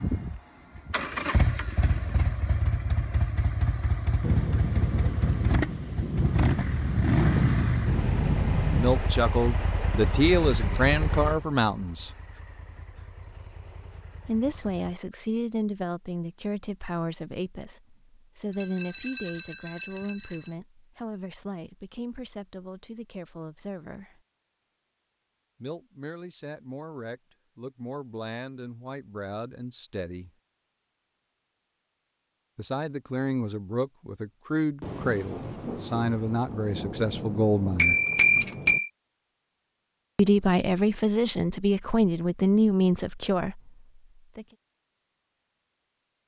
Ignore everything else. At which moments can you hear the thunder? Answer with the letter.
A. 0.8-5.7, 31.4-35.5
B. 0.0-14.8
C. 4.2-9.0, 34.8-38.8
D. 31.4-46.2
C.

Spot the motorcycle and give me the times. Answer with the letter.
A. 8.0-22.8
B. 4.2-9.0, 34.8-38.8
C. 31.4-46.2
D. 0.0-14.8
D.